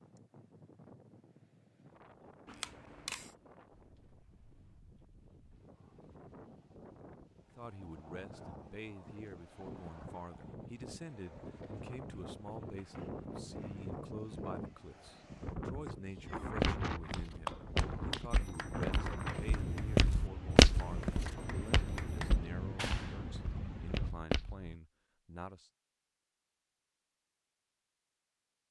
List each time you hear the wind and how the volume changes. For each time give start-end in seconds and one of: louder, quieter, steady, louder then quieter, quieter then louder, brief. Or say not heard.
0.0-24.1 louder.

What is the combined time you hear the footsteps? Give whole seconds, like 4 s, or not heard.
8 s.